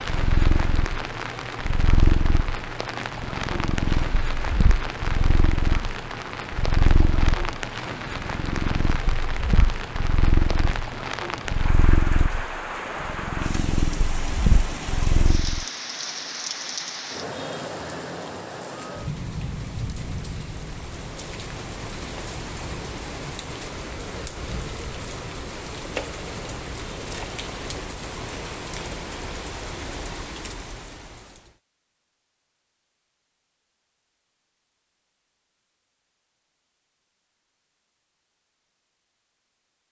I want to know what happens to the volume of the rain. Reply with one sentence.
The volume of the rain stays about the same.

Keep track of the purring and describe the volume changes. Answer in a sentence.
The loudness of the purring stays about the same.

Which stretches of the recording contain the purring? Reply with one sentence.
You can hear the purring from 0.0 to 15.7 s.